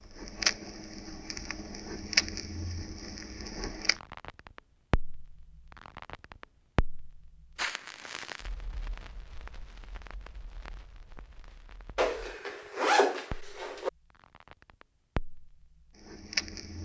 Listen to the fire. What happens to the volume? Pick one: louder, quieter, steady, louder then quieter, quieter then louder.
quieter then louder.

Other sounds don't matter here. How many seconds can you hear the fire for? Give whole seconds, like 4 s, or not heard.
17 s.